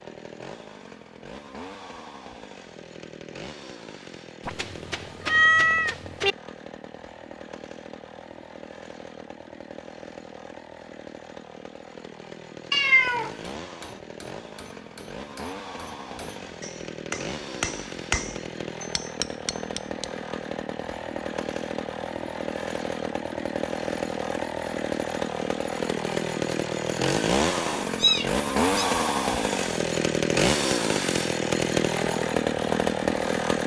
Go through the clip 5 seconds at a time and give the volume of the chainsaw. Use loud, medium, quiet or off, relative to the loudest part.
quiet, quiet, quiet, quiet, medium, loud, loud.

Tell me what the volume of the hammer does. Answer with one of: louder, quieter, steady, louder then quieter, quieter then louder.
louder then quieter.